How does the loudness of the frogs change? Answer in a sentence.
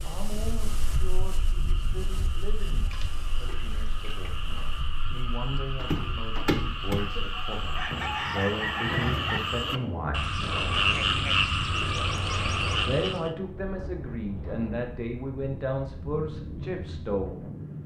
The loudness of the frogs goes up.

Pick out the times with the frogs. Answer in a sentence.
You can hear the frogs from 0.0 to 13.3 s.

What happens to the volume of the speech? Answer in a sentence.
The volume of the speech goes up.